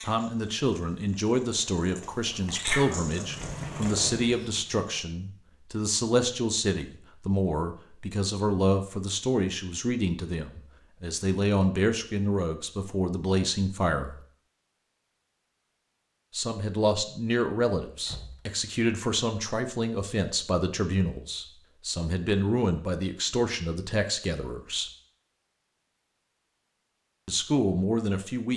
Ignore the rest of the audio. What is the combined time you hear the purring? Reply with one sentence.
You can hear the purring for 4 seconds altogether.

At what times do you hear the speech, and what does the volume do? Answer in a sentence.
You can hear the speech from 0.1 to 14.2 s, at a steady volume; from 16.3 to 24.9 s, at a steady volume; and briefly from 27.2 to 28.5 s.